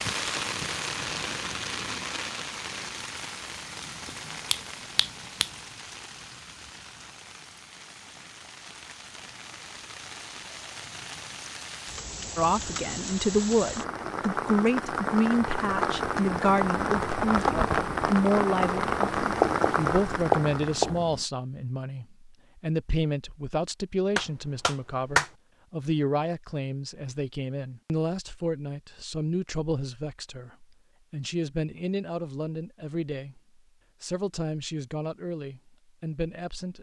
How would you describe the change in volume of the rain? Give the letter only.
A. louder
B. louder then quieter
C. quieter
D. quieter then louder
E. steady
D.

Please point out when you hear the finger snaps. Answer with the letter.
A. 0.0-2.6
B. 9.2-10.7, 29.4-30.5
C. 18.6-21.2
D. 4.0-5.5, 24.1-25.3
D.